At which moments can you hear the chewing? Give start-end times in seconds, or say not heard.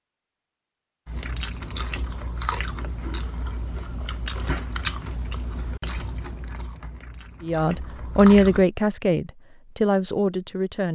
1.1-8.7.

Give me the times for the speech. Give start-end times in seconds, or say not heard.
7.4-10.8.